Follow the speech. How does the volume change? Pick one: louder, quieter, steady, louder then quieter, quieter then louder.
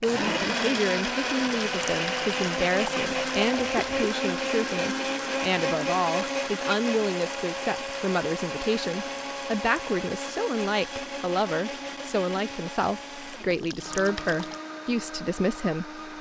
steady.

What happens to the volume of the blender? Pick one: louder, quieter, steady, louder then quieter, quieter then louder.
quieter.